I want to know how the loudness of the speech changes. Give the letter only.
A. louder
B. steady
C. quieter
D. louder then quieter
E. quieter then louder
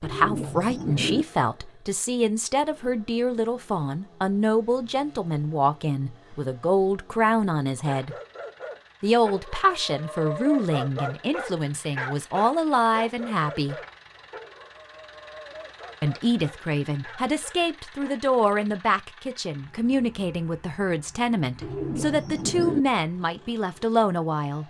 B.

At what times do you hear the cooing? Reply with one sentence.
You can hear the cooing from 0.0 to 1.2 s and from 21.6 to 22.8 s.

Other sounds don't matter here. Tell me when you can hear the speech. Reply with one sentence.
The speech can be heard from 0.0 to 8.2 s, from 9.0 to 13.8 s and from 16.0 to 24.6 s.